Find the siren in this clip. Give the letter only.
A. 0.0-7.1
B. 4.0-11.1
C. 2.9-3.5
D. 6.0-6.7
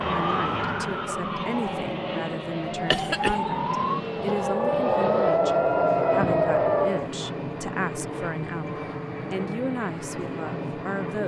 A.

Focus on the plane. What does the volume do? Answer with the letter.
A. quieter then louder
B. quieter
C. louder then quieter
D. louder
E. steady
E.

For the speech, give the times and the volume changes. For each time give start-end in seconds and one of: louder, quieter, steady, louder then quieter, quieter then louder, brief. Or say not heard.
0.0-11.2 steady.